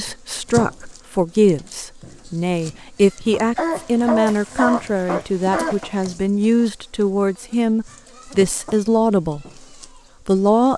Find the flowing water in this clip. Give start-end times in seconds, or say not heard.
not heard.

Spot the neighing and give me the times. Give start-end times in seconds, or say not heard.
not heard.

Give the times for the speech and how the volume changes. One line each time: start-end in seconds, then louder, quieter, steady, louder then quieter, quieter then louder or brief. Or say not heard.
0.0-9.4 steady
10.2-10.7 brief.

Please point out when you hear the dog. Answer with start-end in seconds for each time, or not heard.
3.5-6.1.